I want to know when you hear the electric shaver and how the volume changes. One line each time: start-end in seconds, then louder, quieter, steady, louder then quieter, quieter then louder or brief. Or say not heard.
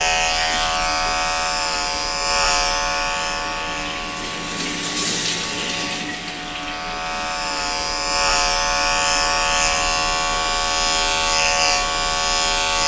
0.0-12.8 quieter then louder.